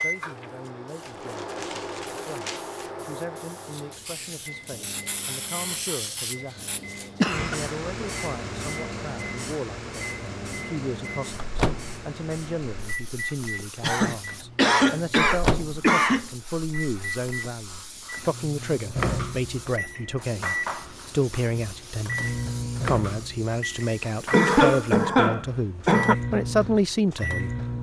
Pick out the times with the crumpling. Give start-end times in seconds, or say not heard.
1.0-3.0.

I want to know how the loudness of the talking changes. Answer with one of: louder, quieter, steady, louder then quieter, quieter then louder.
louder.